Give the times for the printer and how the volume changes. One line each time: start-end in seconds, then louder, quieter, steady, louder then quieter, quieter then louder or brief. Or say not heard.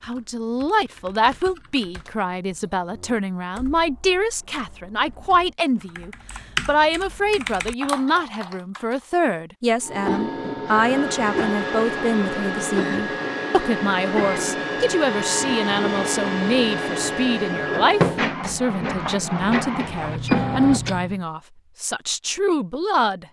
9.8-21.2 steady.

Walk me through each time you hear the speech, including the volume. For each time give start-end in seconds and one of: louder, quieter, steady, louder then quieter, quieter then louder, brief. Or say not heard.
0.0-23.2 steady.